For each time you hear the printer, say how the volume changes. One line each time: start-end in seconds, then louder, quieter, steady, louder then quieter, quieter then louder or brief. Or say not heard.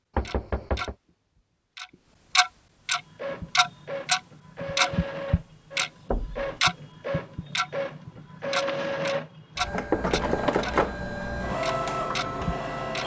3.0-13.0 louder.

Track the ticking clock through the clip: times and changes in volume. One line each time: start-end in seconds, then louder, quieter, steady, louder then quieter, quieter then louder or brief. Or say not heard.
0.2-0.9 brief
1.8-13.0 quieter.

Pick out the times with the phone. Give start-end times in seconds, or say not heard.
not heard.